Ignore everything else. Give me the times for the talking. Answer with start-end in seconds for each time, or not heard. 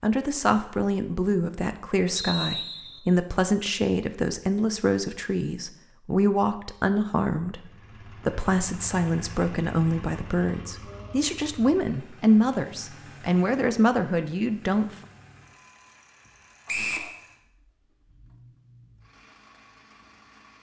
0.0-14.8.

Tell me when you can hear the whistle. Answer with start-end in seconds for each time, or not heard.
2.1-3.0, 16.6-17.1.